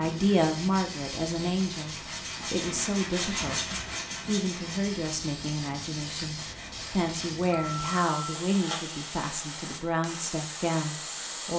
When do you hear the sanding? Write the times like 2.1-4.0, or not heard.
0.0-8.9.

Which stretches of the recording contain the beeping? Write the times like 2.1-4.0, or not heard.
7.5-8.4.